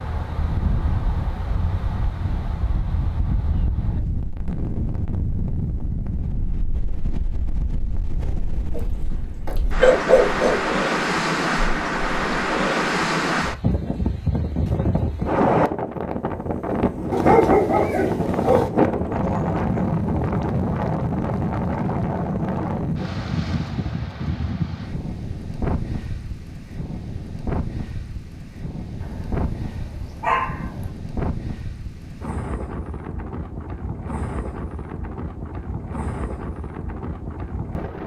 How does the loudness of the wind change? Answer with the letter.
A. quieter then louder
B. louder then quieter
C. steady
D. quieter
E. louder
B.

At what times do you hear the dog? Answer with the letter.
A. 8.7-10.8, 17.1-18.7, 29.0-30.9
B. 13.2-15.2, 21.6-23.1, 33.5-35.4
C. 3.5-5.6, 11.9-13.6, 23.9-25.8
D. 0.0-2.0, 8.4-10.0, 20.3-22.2
A.